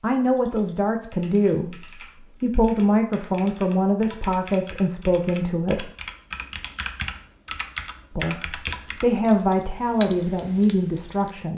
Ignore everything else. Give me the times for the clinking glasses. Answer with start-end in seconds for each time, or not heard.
not heard.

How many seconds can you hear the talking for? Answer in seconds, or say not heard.
9 s.